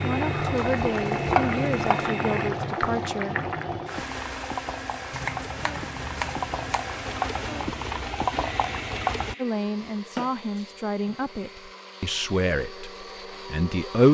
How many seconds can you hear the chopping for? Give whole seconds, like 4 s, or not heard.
5 s.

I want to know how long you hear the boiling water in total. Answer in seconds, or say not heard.
9 s.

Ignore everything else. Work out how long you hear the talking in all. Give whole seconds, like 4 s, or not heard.
8 s.